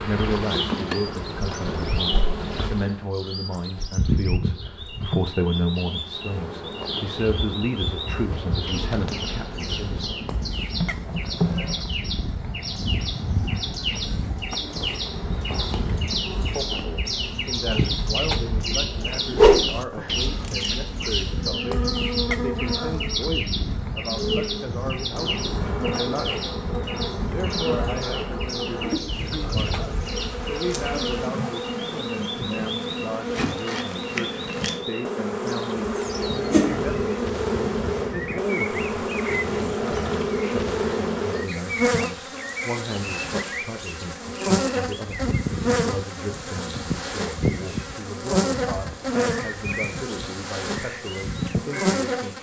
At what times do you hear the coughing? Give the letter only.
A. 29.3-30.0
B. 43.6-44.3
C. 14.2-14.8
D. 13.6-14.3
A.